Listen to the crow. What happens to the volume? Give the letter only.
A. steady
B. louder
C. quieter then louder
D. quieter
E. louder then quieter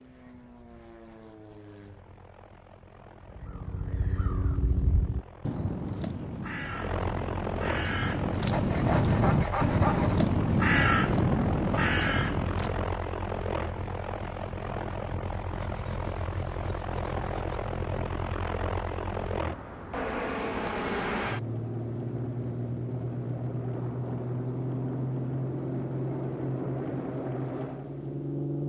B.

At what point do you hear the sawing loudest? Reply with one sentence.
The loudest moment of the sawing is at 10 seconds.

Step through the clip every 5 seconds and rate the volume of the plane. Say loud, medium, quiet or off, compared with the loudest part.
quiet, medium, loud, loud, loud, loud.